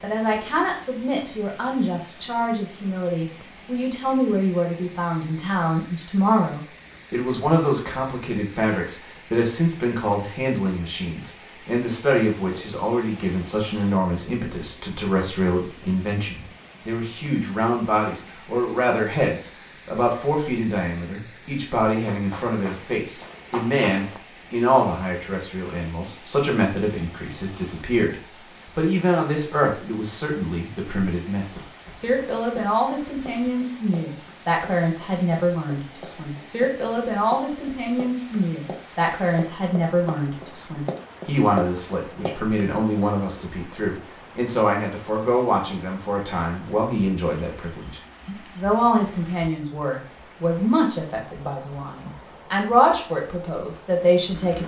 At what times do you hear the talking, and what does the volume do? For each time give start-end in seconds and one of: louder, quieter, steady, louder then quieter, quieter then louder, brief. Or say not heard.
0.0-54.6 steady.